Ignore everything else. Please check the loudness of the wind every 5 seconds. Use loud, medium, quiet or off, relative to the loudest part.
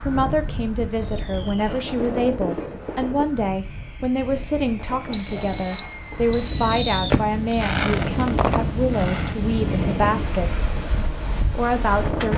medium, loud, loud.